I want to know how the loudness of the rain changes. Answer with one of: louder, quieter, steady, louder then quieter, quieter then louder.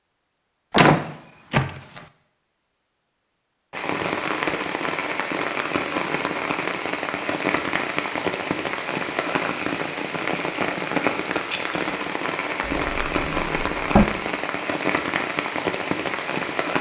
steady.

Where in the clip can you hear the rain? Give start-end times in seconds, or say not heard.
3.7-16.7.